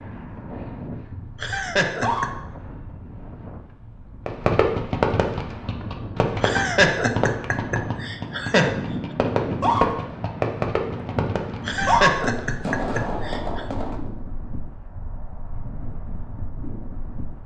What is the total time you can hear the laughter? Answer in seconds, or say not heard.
5 s.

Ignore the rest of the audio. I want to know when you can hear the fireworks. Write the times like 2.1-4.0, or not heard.
4.2-14.1.